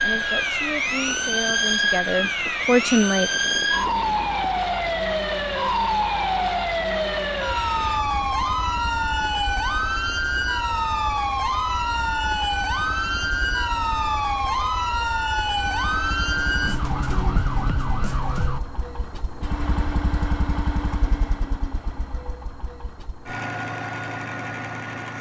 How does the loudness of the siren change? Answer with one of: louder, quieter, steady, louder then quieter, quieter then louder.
steady.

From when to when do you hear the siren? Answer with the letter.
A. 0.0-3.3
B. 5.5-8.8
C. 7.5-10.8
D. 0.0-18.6
D.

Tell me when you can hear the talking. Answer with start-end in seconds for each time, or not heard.
0.0-3.3.